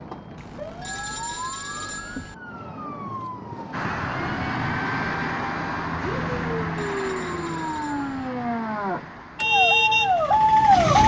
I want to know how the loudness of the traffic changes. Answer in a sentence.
The volume of the traffic goes down.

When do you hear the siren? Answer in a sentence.
You can hear the siren from 0.0 to 11.0 s.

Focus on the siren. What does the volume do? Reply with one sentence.
The loudness of the siren goes up.